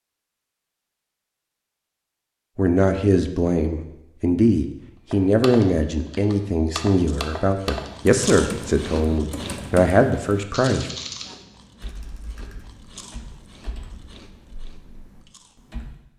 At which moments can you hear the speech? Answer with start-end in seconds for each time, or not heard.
2.5-10.9.